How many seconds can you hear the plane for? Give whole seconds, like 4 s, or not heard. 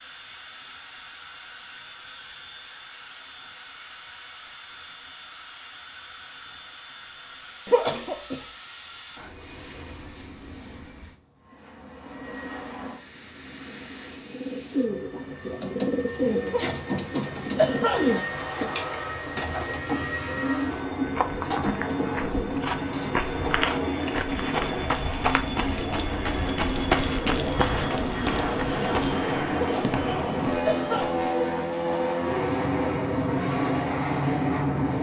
35 s.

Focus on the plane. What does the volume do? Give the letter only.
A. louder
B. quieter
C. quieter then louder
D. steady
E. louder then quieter
A.